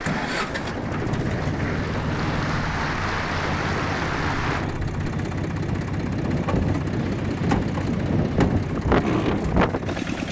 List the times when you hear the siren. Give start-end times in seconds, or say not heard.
not heard.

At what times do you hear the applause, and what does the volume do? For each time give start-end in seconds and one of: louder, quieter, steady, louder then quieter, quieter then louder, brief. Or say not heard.
0.0-4.7 louder.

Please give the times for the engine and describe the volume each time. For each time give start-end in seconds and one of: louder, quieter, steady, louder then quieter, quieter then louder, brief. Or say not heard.
0.0-10.2 steady.